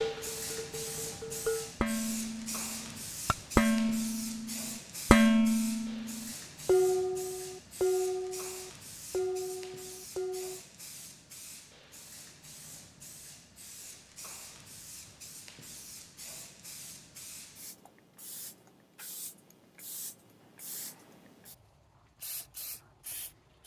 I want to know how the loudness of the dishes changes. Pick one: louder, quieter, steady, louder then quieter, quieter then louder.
louder then quieter.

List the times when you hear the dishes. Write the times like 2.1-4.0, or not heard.
0.0-10.6.